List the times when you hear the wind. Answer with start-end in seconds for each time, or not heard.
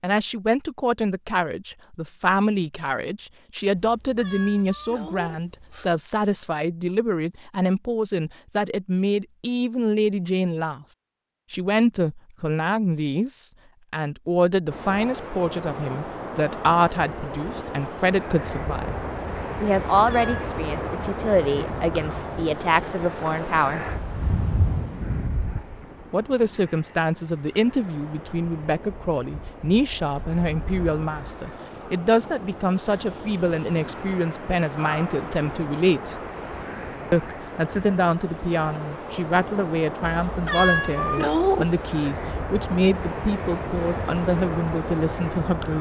14.7-45.7.